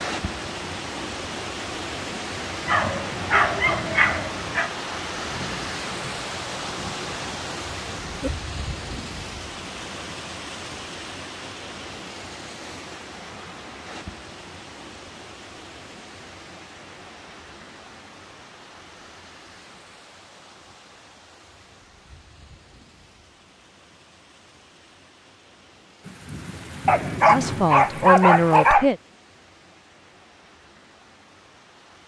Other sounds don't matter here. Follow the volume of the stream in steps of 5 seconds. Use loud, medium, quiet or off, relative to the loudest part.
loud, loud, medium, quiet, quiet, quiet, quiet.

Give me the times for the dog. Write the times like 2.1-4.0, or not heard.
2.6-4.7, 26.9-28.9.